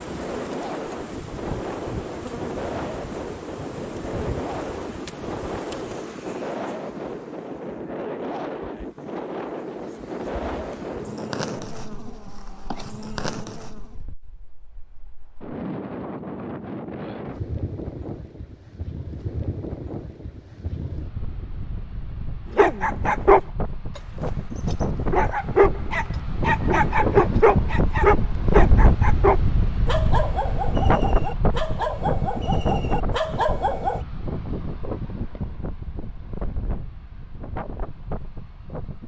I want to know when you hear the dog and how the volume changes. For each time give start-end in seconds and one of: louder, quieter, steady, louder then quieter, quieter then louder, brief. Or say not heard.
22.5-34.0 quieter.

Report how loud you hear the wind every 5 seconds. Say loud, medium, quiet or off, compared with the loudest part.
medium, medium, medium, medium, medium, loud, loud, medium.